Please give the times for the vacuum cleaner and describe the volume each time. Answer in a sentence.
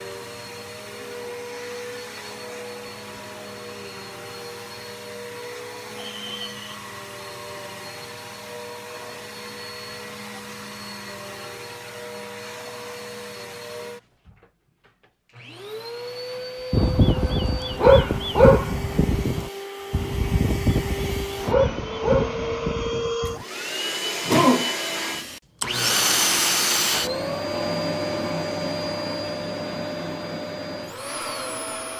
The vacuum cleaner can be heard from 0.0 to 31.9 s, getting louder.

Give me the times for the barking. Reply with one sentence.
You can hear the barking from 16.7 to 23.4 s.